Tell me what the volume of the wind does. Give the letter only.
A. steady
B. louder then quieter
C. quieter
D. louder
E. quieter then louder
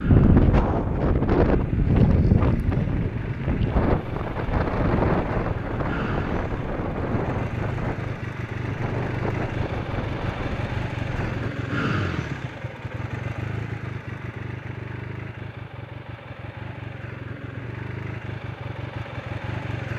C.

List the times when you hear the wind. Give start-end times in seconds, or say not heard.
0.0-11.5.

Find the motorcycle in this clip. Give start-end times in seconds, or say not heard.
0.0-19.9.